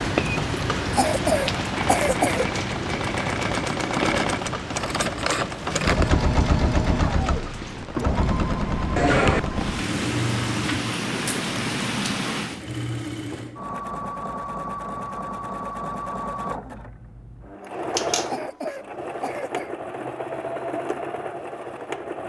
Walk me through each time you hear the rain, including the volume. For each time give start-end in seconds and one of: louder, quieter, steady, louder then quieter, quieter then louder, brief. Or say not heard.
0.0-12.7 quieter then louder.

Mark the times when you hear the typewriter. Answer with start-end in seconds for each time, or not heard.
not heard.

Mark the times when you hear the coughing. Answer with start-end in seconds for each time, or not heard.
0.9-2.5, 8.9-9.4, 18.2-19.7.